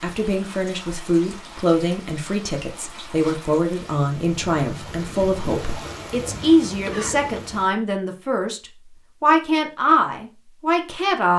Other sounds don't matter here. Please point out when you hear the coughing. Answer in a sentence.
You can hear the coughing from 6.8 to 7.5 s.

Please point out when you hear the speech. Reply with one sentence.
The speech can be heard from 0.0 to 11.3 s.